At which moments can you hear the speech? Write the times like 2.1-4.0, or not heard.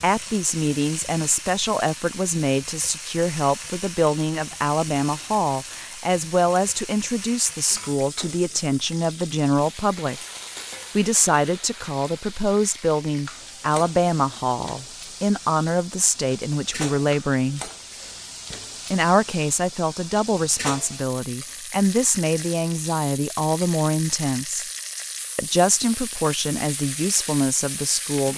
0.0-10.2, 10.9-17.7, 18.9-24.6, 25.4-28.3.